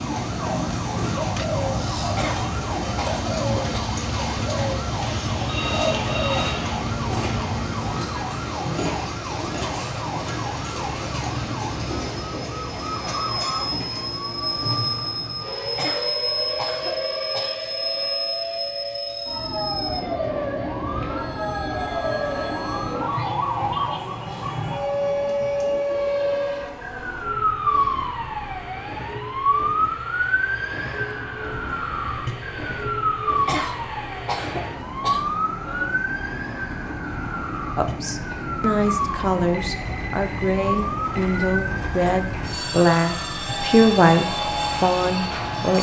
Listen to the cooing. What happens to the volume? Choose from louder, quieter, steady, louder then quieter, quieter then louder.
steady.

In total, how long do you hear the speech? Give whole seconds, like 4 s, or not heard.
8 s.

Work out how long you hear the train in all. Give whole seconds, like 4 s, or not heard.
46 s.